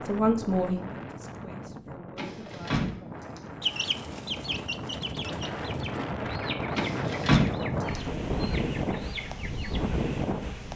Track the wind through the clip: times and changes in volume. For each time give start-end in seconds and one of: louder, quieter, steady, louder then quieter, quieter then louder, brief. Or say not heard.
0.0-10.7 louder.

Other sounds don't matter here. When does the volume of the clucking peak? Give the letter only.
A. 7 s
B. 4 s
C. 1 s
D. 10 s
B.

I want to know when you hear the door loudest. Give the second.
7 s.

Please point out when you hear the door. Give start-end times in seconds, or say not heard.
2.1-3.4, 6.8-8.0.